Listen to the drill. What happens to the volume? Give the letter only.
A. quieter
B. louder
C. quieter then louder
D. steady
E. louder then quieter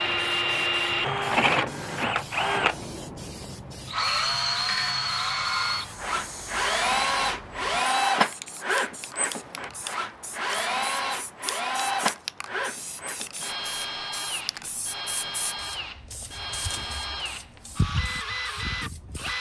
A.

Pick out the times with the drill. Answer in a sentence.
You can hear the drill from 0.0 to 19.3 s.